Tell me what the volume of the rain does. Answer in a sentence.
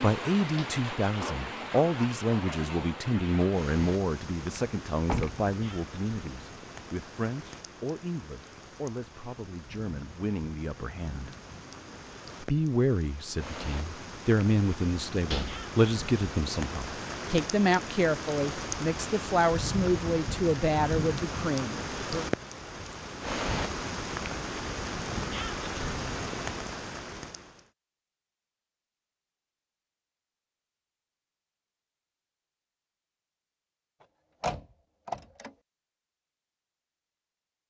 The loudness of the rain goes down, then up.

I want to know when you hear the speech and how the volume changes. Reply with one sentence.
You can hear the speech from 0.0 to 11.3 s, getting quieter; and from 12.4 to 22.3 s, at a steady volume.